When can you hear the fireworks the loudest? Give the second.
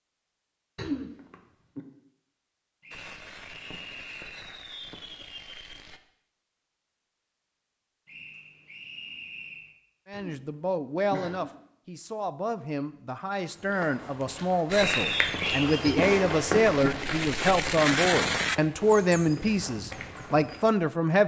18 s.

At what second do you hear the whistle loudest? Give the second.
15 s.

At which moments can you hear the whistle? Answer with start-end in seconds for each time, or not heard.
2.8-4.5, 8.1-9.7, 14.8-15.7.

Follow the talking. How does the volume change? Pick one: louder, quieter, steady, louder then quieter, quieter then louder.
louder.